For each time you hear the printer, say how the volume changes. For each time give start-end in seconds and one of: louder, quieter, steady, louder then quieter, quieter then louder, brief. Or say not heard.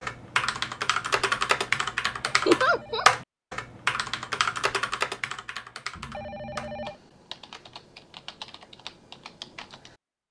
not heard.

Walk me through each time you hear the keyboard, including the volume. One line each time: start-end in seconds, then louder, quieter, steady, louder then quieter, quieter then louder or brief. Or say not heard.
0.0-10.0 quieter.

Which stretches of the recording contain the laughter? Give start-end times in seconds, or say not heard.
2.5-3.0.